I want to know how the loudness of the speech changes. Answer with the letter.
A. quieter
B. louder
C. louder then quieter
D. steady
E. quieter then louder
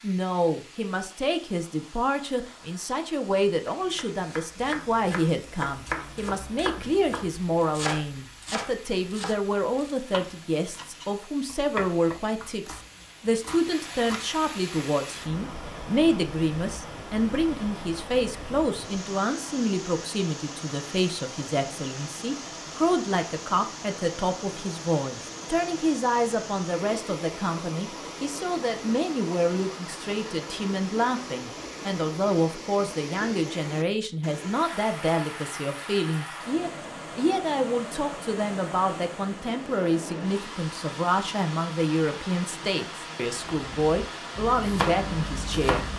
D.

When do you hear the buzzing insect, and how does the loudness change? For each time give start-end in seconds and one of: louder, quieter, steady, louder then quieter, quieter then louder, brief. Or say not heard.
not heard.